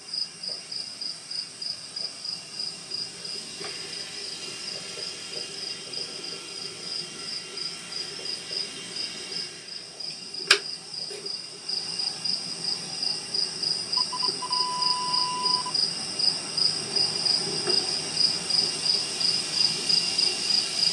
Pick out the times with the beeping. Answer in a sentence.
You can hear the beeping from 13.9 to 15.8 s.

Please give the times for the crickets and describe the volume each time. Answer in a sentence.
You can hear the crickets from 0.0 to 20.8 s, getting louder.